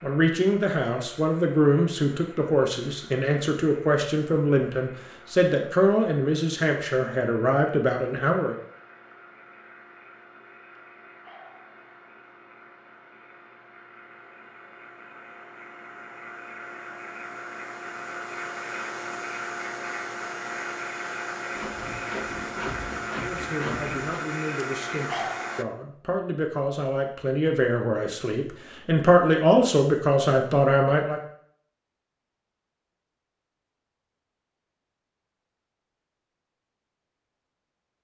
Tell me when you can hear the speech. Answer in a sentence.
The speech can be heard from 0.0 to 8.6 s and from 23.1 to 31.2 s.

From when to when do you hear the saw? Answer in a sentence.
You can hear the saw from 21.6 to 24.0 s.